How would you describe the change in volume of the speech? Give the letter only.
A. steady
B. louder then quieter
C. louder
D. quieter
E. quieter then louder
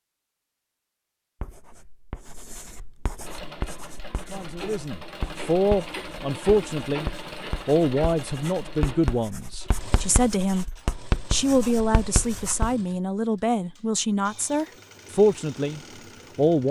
A.